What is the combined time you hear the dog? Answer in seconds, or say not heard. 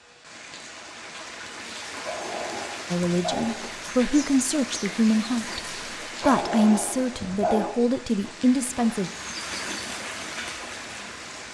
3 s.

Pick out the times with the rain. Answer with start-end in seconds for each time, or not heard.
0.0-11.4.